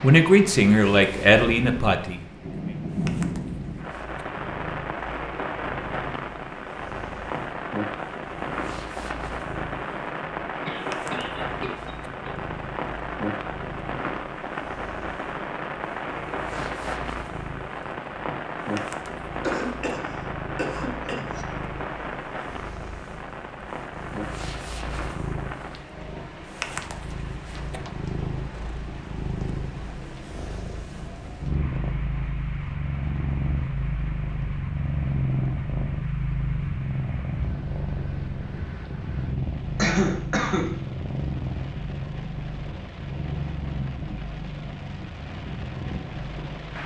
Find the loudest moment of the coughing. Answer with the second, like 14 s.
40 s.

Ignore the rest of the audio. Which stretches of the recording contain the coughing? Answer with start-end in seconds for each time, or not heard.
10.7-12.3, 19.4-21.4, 39.8-40.7.